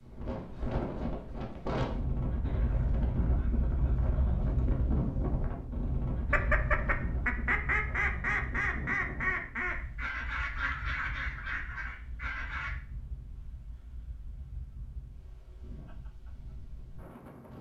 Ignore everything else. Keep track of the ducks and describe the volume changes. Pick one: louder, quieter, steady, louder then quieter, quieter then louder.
quieter.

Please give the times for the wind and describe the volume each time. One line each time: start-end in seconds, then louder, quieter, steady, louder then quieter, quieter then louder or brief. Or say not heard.
0.0-17.5 quieter.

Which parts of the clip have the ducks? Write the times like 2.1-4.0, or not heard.
6.3-12.7.